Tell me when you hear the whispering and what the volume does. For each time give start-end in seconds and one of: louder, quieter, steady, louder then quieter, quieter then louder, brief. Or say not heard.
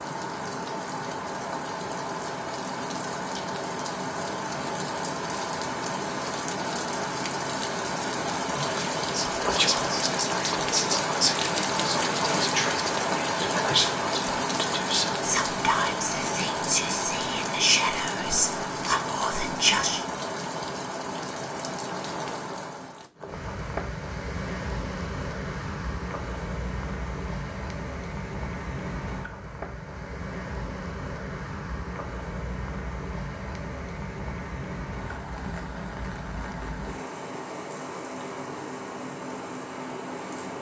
8.5-20.1 steady.